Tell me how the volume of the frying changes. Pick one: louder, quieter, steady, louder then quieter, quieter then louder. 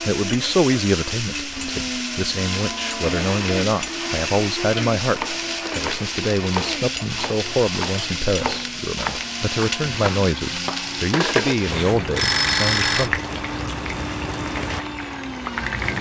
steady.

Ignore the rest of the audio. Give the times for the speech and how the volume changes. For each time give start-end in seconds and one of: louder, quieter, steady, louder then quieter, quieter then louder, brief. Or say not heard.
0.0-13.2 steady.